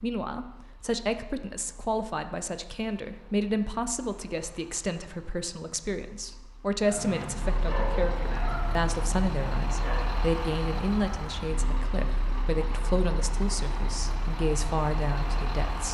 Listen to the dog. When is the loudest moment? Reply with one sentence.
The volume of the dog peaks at 8 seconds.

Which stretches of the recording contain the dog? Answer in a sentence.
You can hear the dog from 6.9 to 10.2 s.